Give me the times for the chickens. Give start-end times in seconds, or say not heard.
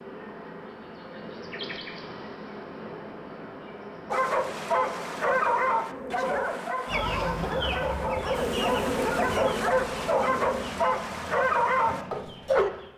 6.8-12.9.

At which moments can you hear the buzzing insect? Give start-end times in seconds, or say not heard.
0.0-6.5, 8.3-10.7.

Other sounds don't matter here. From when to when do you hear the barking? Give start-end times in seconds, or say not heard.
4.1-12.7.